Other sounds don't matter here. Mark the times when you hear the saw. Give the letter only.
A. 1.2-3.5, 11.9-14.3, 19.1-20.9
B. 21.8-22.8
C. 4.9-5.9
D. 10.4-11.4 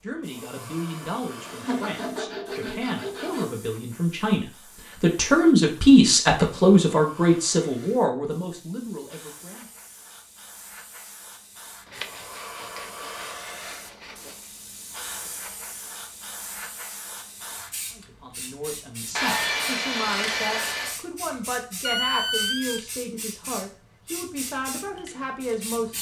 A.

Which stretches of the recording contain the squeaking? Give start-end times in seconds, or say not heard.
21.8-22.8.